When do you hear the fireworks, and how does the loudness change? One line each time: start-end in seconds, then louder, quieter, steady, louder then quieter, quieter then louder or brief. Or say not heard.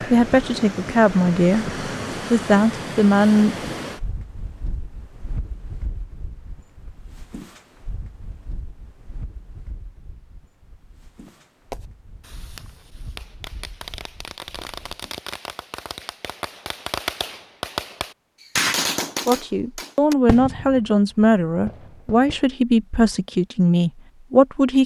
11.2-22.4 louder then quieter.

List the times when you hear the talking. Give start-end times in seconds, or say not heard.
0.0-3.5, 19.2-24.8.